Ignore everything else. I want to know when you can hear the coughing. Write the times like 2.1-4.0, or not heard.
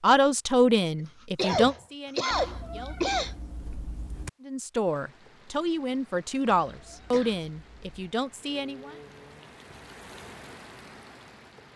1.4-3.4, 6.7-7.4.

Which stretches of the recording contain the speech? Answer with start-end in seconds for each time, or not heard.
0.0-3.1, 4.5-8.9.